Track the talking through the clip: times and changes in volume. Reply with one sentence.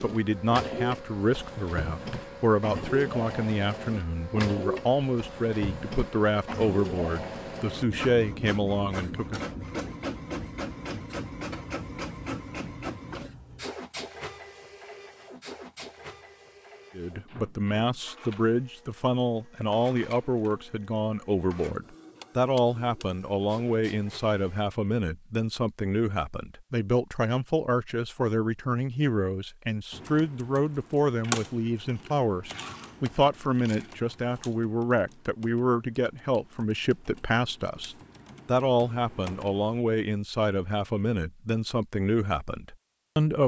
The talking can be heard from 0.0 to 9.4 s, at a steady volume; and from 16.9 to 43.4 s, at a steady volume.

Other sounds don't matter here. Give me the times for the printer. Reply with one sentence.
The printer can be heard from 0.0 to 24.6 s.